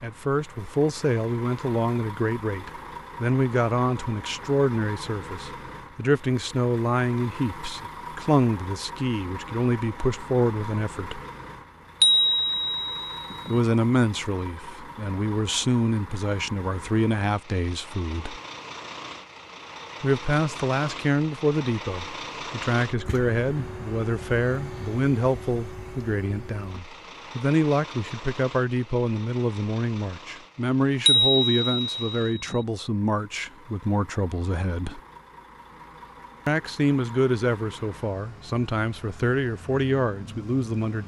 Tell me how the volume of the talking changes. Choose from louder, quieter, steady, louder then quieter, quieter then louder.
steady.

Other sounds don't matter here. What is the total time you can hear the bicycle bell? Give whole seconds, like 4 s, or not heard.
3 s.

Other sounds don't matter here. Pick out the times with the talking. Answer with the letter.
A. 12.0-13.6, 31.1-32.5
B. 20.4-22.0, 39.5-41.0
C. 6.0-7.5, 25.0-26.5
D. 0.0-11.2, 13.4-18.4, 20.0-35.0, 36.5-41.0
D.